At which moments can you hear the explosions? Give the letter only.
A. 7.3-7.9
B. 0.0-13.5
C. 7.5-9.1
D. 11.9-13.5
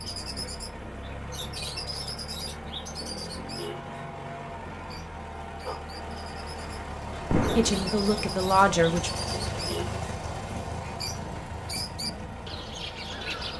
A.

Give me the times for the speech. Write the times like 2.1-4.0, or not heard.
7.5-9.1.